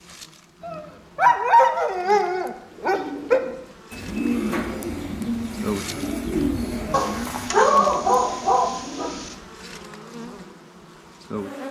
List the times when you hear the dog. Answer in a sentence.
The dog can be heard from 0.6 to 3.4 s and from 6.9 to 9.3 s.